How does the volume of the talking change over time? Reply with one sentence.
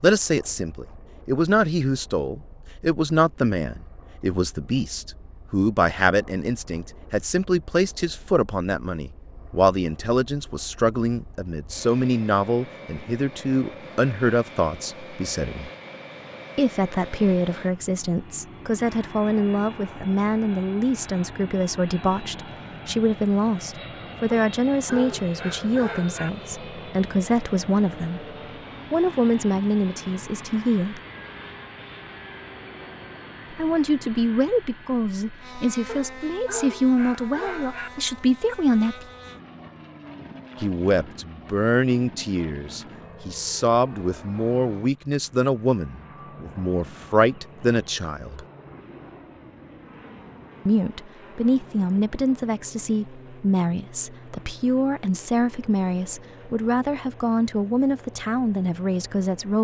The volume of the talking stays about the same.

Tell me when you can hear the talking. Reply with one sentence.
The talking can be heard from 0.0 to 15.7 s, from 16.6 to 31.0 s, from 33.5 to 39.0 s, from 40.6 to 48.5 s and from 50.6 to 59.5 s.